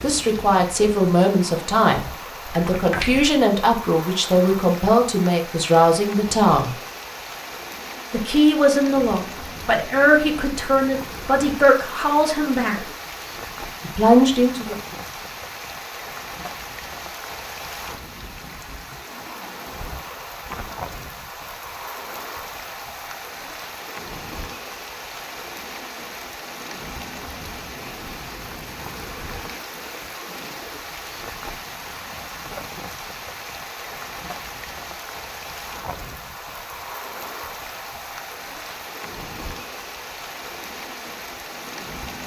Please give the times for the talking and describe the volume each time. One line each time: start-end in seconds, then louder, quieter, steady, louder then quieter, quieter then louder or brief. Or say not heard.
0.0-6.8 steady
8.1-12.8 steady
13.8-14.8 brief.